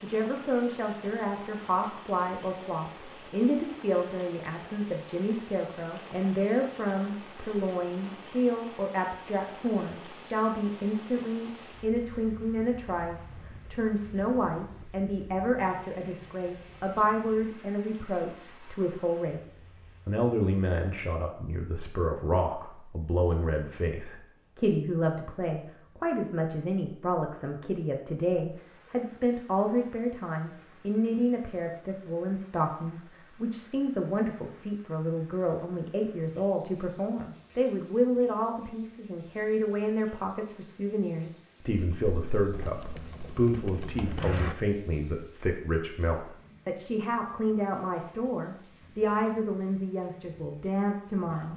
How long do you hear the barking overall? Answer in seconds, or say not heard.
not heard.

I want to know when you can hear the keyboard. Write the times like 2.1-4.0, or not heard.
41.8-44.5.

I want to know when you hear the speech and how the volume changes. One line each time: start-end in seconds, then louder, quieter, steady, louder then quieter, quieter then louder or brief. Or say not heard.
0.0-51.5 steady.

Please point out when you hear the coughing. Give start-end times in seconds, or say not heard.
not heard.